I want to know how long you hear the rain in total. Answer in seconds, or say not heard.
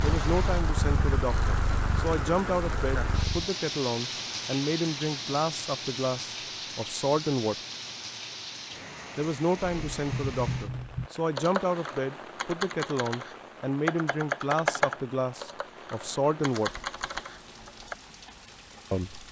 19 s.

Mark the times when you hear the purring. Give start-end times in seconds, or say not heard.
0.0-3.5.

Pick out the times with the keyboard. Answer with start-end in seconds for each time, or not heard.
9.7-17.9.